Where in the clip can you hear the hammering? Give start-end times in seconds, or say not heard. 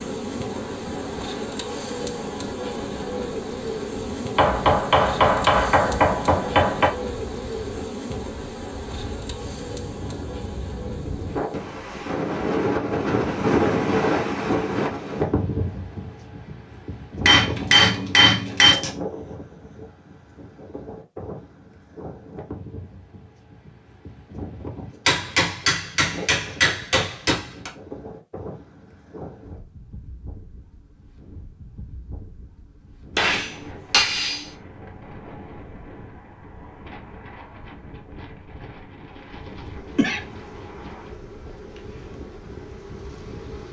4.3-6.9, 17.2-18.9, 25.1-27.7, 33.1-34.5.